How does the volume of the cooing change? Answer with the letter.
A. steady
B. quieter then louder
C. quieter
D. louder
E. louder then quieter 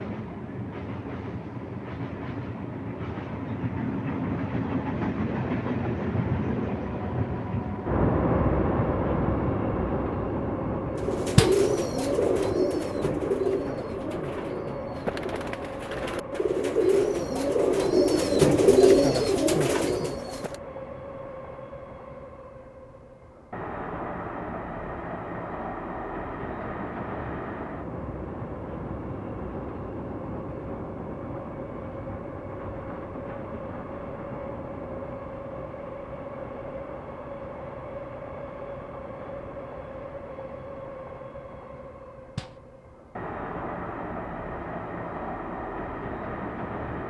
B.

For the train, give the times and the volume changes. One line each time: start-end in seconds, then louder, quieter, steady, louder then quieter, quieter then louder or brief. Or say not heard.
0.0-47.0 quieter.